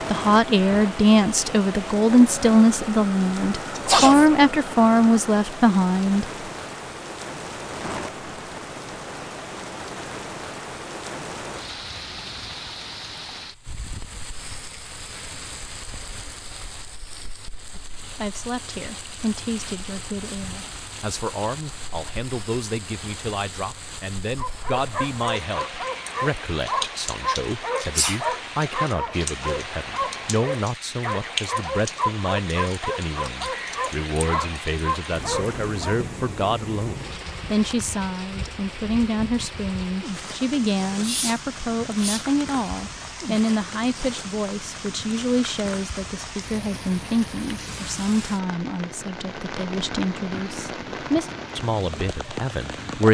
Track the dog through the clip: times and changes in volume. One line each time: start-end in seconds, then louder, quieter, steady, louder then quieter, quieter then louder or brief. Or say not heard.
24.4-36.0 steady.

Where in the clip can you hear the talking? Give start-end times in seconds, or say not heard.
0.1-6.2, 17.8-53.1.